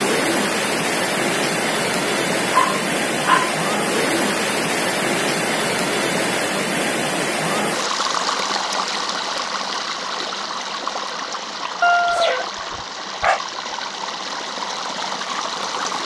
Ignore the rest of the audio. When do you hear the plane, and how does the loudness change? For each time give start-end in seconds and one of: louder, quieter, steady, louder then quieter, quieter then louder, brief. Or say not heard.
not heard.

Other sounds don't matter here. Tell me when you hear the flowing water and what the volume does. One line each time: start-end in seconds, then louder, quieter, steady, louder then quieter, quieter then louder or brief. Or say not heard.
0.0-15.9 quieter.